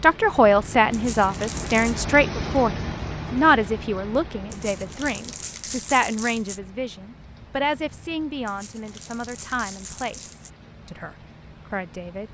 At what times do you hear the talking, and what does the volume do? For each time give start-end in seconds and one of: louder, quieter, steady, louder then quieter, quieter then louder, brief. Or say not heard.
0.0-12.2 quieter.